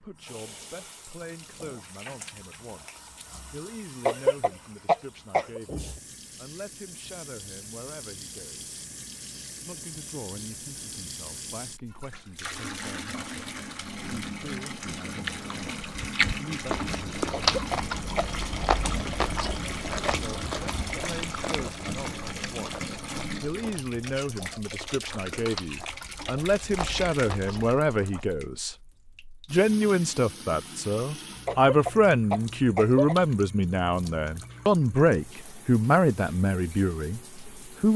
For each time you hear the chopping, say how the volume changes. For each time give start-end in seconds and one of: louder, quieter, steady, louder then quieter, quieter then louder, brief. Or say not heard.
not heard.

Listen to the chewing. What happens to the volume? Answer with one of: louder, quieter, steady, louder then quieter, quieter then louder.
quieter.